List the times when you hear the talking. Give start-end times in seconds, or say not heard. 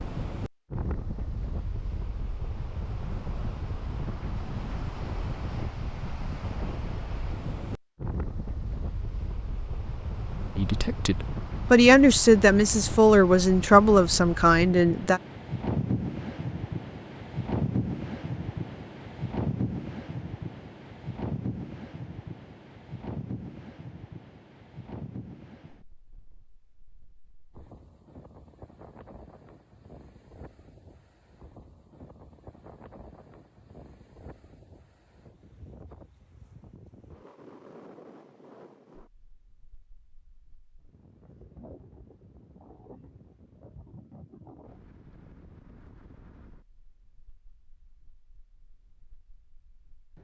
10.6-15.2.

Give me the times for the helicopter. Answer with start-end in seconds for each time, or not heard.
not heard.